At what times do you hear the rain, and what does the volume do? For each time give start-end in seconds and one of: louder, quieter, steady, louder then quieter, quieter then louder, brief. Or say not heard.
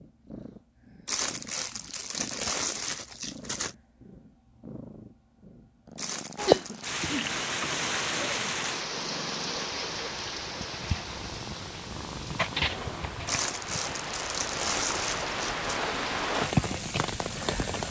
6.3-17.8 quieter then louder.